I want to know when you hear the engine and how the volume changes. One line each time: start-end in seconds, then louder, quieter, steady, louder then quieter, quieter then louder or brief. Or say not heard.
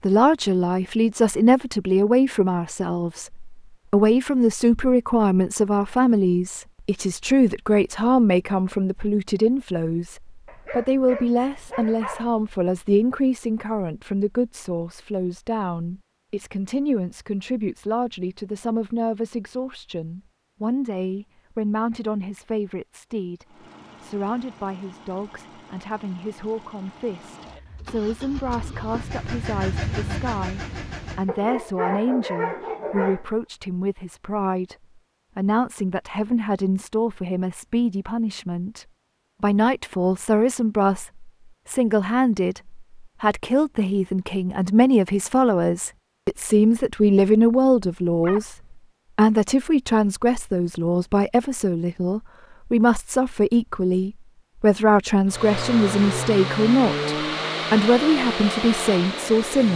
23.4-31.4 louder
55.2-59.7 steady.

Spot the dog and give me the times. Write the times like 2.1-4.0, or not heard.
10.4-12.3, 31.2-33.2, 48.2-48.6.